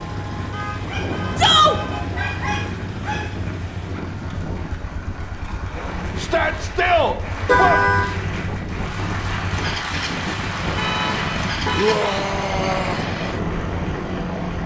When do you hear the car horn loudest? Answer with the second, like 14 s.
8 s.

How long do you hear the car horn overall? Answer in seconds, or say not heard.
4 s.